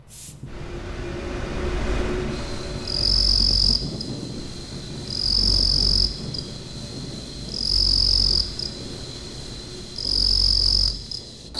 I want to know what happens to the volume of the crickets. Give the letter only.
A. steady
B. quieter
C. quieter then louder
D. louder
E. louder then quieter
C.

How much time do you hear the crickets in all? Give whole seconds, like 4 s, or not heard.
9 s.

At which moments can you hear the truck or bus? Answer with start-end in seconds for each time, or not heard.
0.0-10.2.